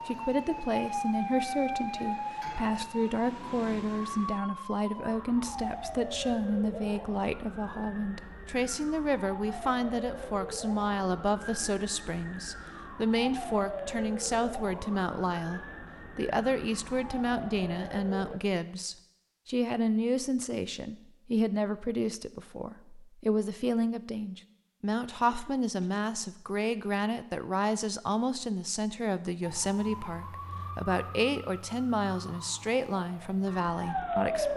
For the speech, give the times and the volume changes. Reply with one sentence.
The speech can be heard from 0.1 to 34.5 s, at a steady volume.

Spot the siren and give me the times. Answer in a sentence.
The siren can be heard from 0.0 to 18.4 s and from 29.4 to 34.5 s.